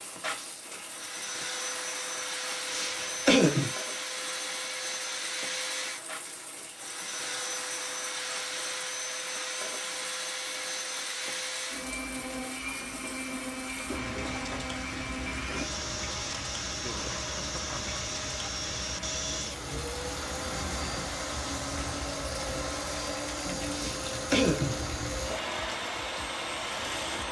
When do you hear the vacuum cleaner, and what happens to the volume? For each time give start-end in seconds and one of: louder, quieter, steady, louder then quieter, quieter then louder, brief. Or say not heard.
0.0-27.2 steady.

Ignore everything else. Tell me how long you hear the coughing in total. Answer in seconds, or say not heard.
2 s.